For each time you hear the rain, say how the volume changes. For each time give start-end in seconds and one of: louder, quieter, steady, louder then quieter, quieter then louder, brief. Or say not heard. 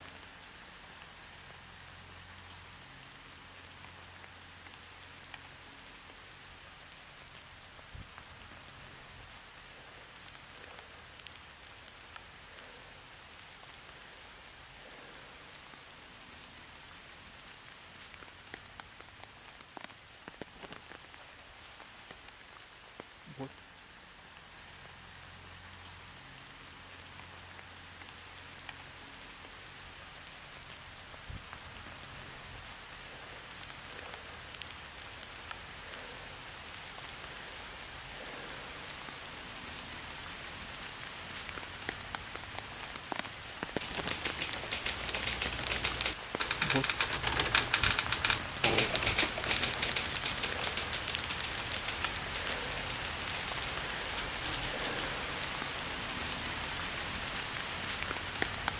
0.0-58.7 louder.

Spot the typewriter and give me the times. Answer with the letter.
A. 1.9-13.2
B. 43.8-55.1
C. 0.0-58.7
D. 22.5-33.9
B.